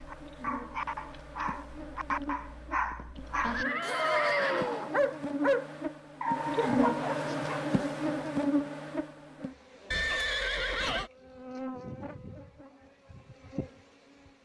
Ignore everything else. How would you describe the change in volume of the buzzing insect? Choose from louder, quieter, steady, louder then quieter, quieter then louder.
louder then quieter.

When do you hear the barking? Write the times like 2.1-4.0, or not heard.
0.0-7.7.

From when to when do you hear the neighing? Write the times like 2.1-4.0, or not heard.
3.5-5.0, 9.9-11.1.